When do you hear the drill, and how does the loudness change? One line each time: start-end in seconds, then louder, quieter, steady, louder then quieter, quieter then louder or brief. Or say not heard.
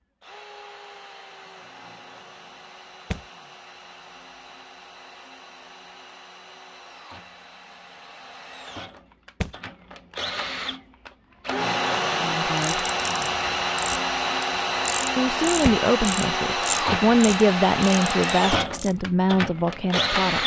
0.2-20.4 louder.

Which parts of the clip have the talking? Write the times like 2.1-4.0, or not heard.
12.2-12.9, 15.2-20.4.